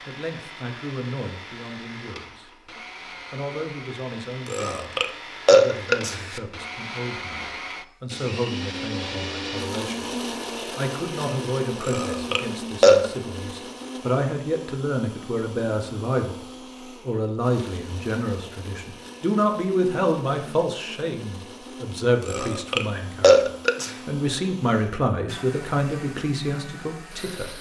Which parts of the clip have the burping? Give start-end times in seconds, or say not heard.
4.5-6.4, 11.8-13.1, 22.2-23.9.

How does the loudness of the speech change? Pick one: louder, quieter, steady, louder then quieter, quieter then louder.
louder.